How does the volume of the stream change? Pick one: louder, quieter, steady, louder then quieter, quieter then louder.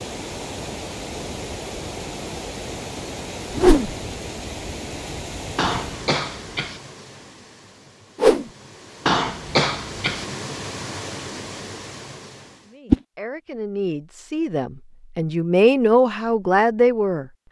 quieter then louder.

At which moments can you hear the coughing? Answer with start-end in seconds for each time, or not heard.
5.5-6.8, 9.1-10.2.